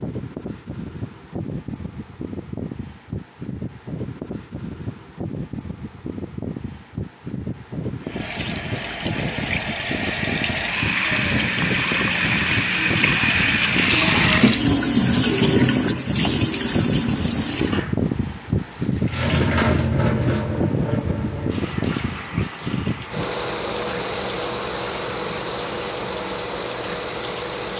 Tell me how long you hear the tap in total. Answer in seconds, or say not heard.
20 s.